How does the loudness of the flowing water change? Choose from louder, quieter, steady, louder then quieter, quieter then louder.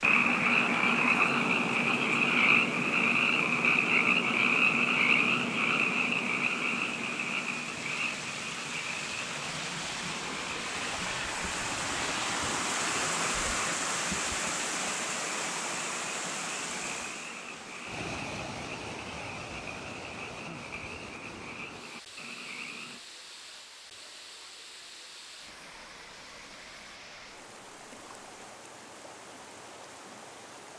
louder then quieter.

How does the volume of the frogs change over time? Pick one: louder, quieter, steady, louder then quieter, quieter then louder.
quieter.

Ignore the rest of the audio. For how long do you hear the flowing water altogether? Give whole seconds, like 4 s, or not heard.
31 s.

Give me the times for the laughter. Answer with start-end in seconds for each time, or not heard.
not heard.